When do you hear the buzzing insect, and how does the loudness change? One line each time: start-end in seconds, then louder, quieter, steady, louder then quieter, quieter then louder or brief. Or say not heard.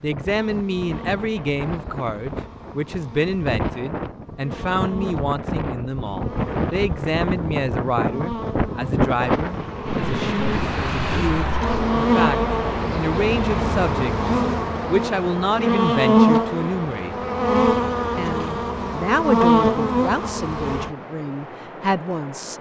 0.0-20.9 louder.